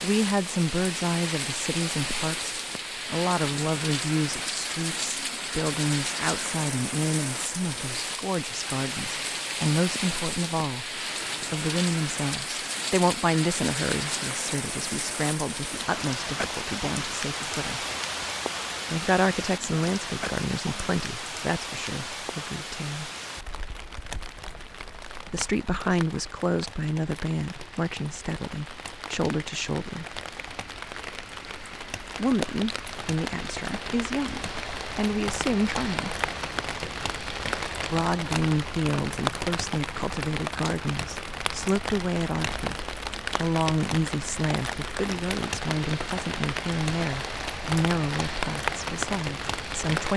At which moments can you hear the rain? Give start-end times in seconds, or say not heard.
0.0-50.1.